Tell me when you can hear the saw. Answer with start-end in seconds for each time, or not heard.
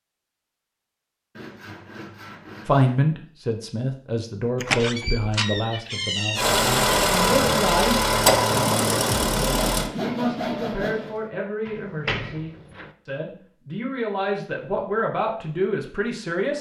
1.4-3.0, 8.8-11.3.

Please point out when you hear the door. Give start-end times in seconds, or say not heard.
4.6-6.5, 11.7-12.9.